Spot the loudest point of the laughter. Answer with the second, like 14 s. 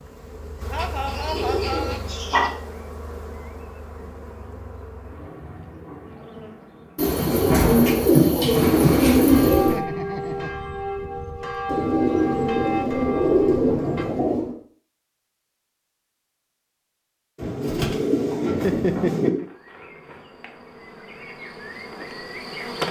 19 s.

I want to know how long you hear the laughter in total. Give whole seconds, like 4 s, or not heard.
3 s.